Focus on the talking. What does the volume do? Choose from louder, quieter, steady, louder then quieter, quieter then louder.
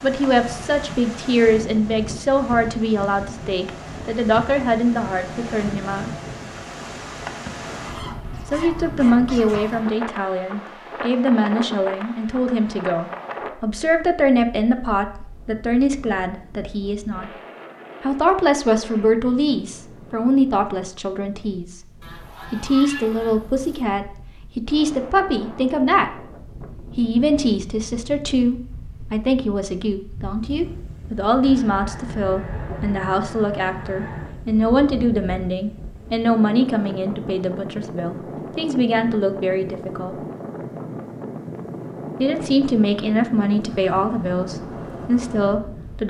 steady.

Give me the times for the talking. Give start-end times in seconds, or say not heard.
0.0-6.1, 8.4-17.3, 18.0-21.9, 22.5-26.2, 26.9-40.1, 42.2-46.0.